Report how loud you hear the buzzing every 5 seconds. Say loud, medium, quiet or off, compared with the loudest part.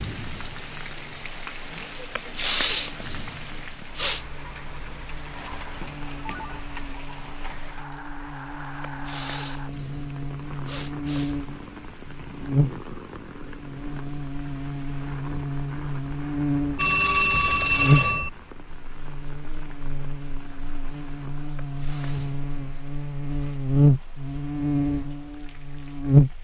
quiet, quiet, medium, medium, medium, loud.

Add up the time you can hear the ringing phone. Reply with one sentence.
The ringing phone can be heard for 2 seconds in total.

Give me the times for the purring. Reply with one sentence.
The purring can't be heard in this clip.